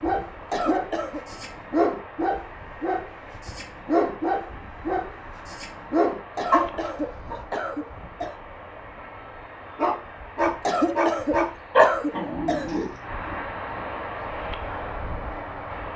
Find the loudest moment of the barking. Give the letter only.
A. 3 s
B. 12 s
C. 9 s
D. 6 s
B.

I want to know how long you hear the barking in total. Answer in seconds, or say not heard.
11 s.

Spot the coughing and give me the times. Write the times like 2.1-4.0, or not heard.
0.5-1.2, 6.3-8.3, 10.6-12.8.